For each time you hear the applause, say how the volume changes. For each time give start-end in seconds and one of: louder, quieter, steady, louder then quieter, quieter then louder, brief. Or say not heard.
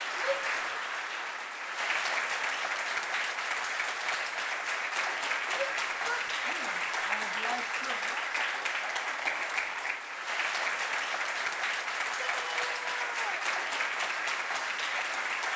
0.0-15.5 steady.